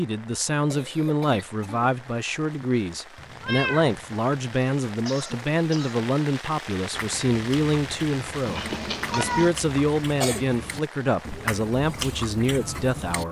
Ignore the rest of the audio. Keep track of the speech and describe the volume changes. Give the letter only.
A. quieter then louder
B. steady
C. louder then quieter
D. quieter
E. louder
B.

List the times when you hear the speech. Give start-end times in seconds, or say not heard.
0.0-13.2.